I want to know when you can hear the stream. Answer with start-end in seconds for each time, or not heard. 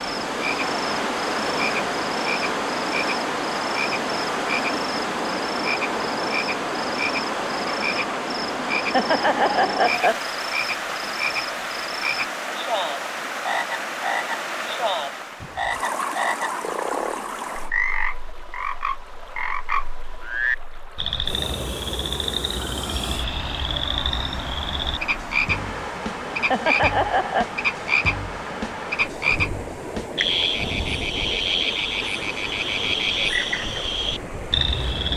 0.0-35.1.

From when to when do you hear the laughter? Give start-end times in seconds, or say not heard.
8.8-10.2, 26.3-27.4.